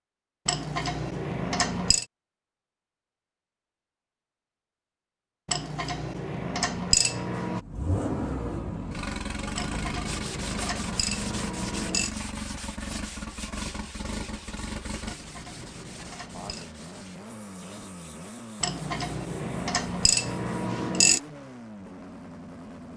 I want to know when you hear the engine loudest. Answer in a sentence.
The volume of the engine peaks at 8 seconds.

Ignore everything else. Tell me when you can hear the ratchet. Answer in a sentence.
You can hear the ratchet from 0.5 to 2.0 s, from 5.5 to 7.6 s, from 9.6 to 12.2 s, from 15.1 to 16.6 s and from 18.6 to 21.2 s.